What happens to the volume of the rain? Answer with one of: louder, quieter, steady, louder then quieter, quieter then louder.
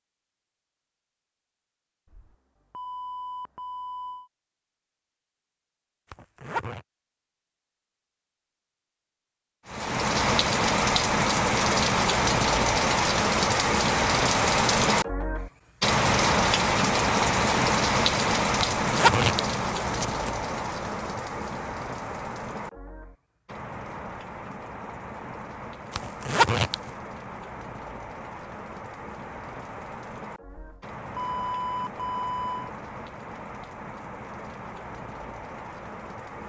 quieter.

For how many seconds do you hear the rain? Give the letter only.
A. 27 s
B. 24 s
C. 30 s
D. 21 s
A.